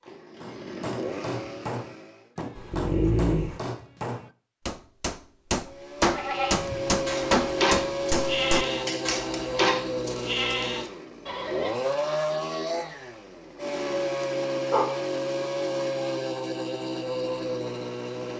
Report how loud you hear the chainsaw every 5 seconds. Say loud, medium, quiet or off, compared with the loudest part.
medium, loud, loud, loud.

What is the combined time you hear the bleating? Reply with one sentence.
The bleating can be heard for 6 seconds in total.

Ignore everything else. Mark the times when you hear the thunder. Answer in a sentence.
You can't hear the thunder here.